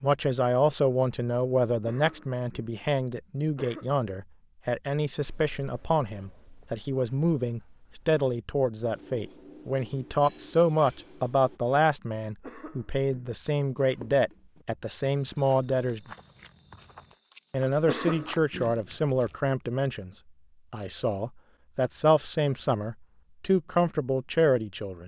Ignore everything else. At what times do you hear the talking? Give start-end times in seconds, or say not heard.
0.0-16.1, 17.5-20.1, 20.7-25.0.